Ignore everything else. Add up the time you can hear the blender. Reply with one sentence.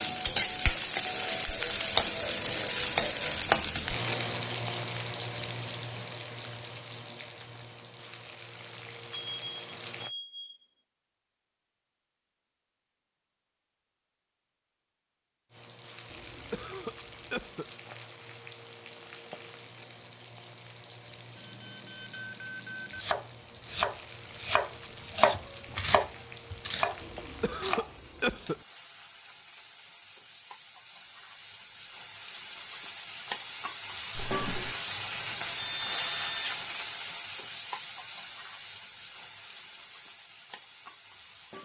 The blender can't be heard in this clip.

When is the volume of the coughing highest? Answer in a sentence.
The volume of the coughing peaks at 28 seconds.